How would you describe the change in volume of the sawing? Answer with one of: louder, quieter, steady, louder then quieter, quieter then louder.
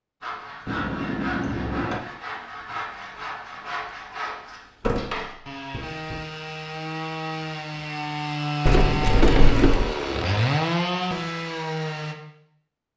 louder.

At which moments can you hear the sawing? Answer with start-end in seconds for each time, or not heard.
0.2-12.2.